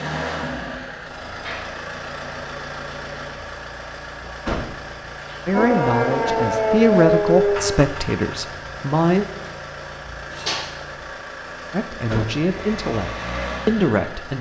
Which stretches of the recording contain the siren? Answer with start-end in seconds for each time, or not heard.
5.5-7.8.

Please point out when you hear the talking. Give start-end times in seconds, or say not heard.
5.5-9.2, 11.7-14.3.